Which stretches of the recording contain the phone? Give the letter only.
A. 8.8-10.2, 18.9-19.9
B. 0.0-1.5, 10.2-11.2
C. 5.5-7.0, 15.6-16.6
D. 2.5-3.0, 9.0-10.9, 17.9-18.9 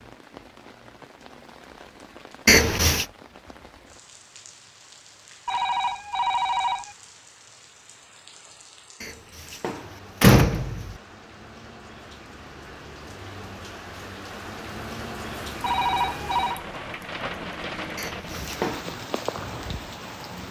C.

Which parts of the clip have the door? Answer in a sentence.
The door can be heard from 2.5 to 3.0 s, from 9.0 to 10.9 s and from 17.9 to 18.9 s.